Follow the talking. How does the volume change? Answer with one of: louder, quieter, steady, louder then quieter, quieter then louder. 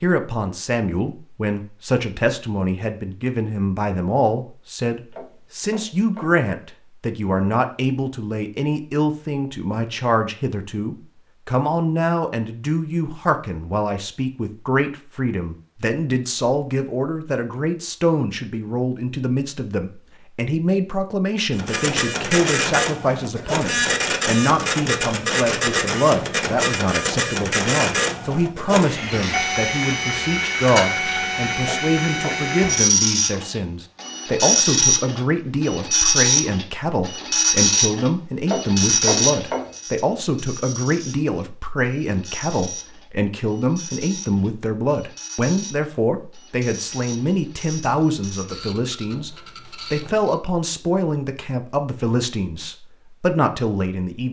steady.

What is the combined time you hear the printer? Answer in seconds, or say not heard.
29 s.